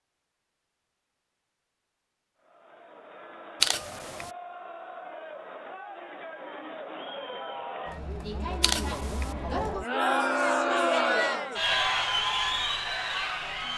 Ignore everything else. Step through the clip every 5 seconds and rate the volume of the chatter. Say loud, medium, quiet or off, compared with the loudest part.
quiet, medium, loud.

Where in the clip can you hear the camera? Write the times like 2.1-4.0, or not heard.
3.6-4.3, 8.6-9.3.